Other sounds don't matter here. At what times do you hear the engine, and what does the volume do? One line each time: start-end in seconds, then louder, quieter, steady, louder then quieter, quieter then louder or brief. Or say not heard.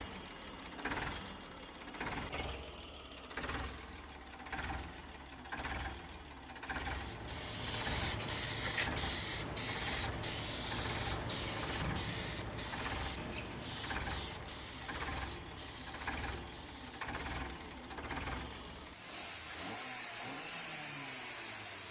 0.0-21.8 steady.